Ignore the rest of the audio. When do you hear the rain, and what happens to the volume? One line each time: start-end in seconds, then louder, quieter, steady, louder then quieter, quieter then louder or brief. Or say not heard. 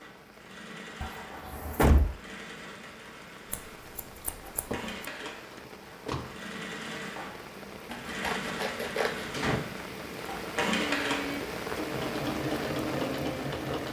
0.0-13.8 louder.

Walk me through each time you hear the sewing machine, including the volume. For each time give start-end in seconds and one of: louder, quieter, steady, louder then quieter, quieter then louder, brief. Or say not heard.
0.0-13.8 louder.